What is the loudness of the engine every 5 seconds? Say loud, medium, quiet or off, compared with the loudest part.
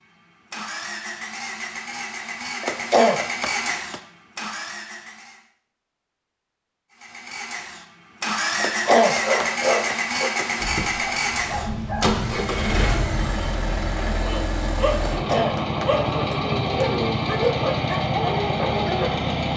medium, loud, loud, loud.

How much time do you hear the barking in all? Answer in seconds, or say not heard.
10 s.